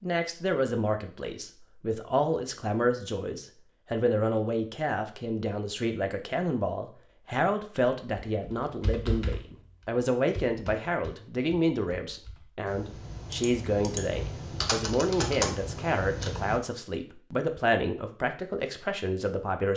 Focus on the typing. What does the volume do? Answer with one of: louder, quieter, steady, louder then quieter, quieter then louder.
quieter then louder.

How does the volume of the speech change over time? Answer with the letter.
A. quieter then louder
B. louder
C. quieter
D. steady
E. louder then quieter
D.